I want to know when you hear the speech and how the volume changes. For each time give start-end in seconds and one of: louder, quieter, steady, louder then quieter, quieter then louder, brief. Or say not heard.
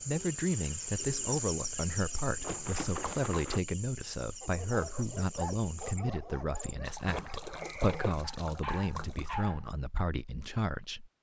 0.0-11.1 steady.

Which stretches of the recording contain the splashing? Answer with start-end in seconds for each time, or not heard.
2.4-3.6, 6.8-9.5.